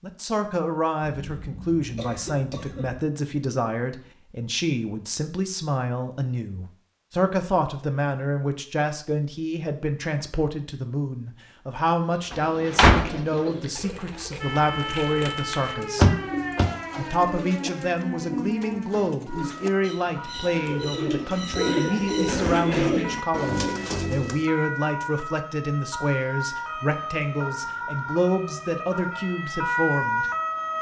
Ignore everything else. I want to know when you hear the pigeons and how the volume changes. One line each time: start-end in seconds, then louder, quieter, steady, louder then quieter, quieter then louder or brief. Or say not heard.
12.1-24.4 louder.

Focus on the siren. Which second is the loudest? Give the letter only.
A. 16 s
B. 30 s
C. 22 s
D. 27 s
B.